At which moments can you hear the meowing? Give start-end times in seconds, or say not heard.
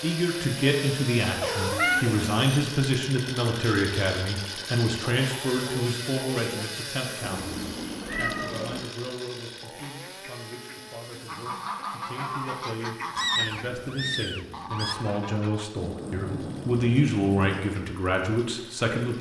1.4-2.5, 7.2-8.9, 13.2-14.9.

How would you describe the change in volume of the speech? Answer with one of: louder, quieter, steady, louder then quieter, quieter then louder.
quieter then louder.